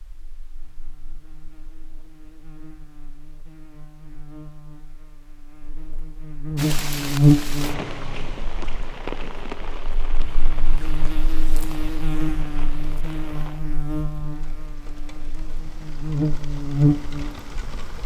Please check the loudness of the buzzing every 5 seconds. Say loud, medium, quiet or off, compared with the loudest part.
quiet, loud, medium, loud.